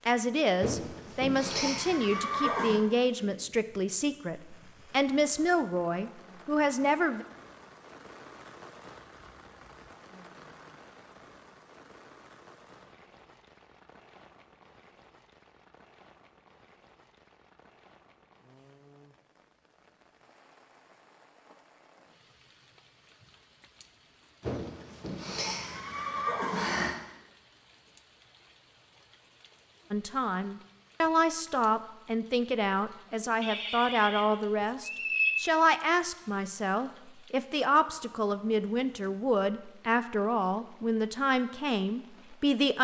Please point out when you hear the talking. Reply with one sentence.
You can hear the talking from 0.1 to 7.2 s and from 29.9 to 42.7 s.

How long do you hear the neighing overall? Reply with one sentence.
You can hear the neighing for 7 seconds altogether.